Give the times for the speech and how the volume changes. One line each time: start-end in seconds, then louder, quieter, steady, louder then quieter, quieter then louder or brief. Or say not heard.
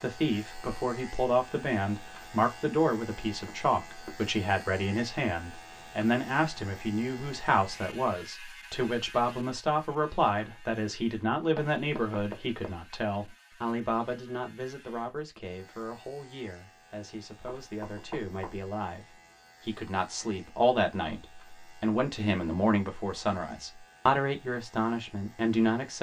0.0-25.9 quieter then louder.